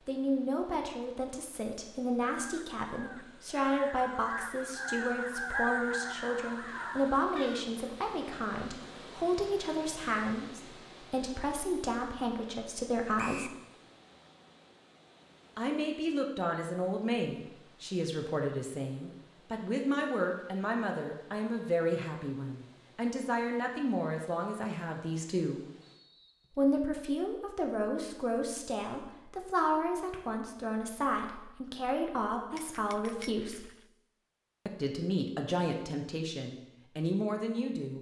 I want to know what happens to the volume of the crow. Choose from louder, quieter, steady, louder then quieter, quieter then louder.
louder then quieter.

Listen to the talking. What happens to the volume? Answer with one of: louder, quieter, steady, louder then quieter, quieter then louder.
steady.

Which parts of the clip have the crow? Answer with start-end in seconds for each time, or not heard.
2.2-7.8.